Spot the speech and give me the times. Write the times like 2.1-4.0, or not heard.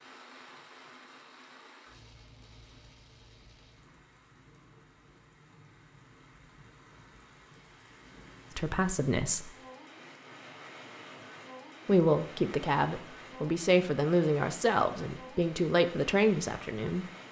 8.6-9.5, 11.8-17.1.